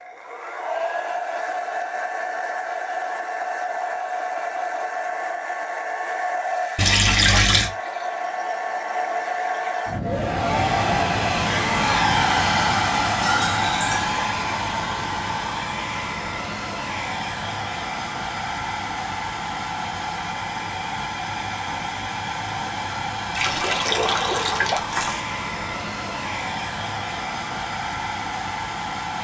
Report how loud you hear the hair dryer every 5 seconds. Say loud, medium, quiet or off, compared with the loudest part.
medium, medium, loud, medium, medium, medium.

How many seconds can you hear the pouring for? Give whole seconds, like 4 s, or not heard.
4 s.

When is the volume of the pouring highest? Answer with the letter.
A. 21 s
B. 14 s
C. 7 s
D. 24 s
C.